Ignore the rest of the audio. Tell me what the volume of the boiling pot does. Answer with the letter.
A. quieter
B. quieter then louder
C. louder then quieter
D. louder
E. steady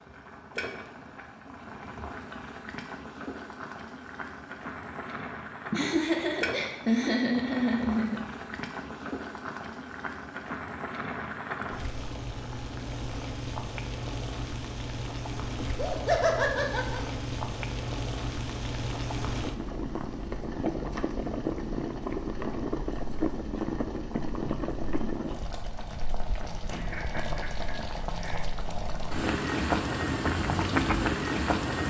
D.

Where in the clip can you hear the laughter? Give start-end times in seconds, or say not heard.
5.7-8.2, 15.6-17.0, 26.6-28.5.